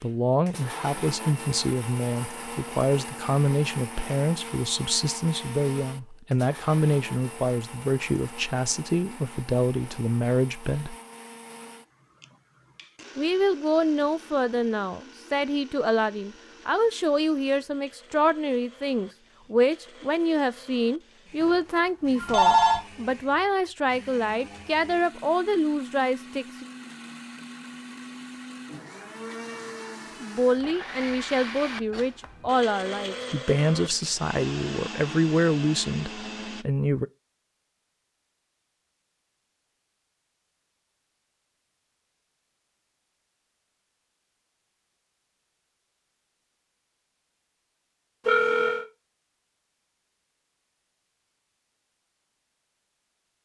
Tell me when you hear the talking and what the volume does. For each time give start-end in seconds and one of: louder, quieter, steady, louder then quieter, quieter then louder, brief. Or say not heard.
0.0-10.9 steady
13.2-26.6 steady
30.2-37.0 steady.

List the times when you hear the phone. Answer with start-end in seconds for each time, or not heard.
21.4-22.8, 48.2-48.9.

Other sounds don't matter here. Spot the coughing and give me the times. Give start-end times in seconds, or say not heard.
not heard.